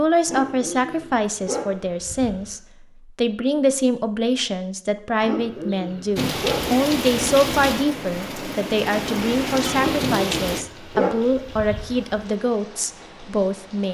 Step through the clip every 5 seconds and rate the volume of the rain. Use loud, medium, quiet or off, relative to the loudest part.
off, loud, medium.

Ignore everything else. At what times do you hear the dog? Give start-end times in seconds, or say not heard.
0.2-2.5, 5.2-6.7, 9.8-12.2.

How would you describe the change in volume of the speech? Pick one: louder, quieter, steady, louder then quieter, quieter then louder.
steady.